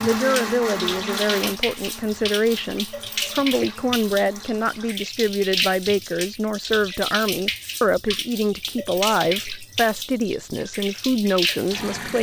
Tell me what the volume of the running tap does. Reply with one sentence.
The loudness of the running tap stays about the same.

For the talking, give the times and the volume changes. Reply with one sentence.
You can hear the talking from 0.0 to 12.1 s, at a steady volume.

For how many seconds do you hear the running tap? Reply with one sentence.
You can hear the running tap for 12 seconds altogether.